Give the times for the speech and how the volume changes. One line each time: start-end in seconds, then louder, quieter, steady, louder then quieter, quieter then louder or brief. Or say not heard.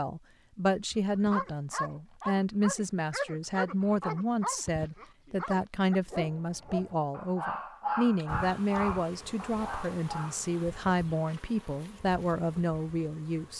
0.0-13.5 steady.